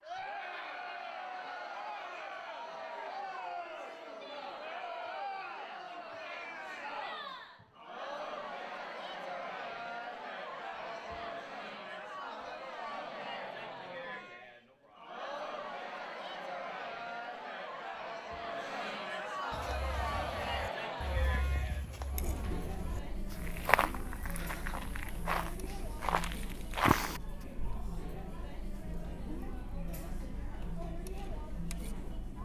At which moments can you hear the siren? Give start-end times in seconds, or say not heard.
not heard.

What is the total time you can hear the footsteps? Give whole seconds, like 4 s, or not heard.
8 s.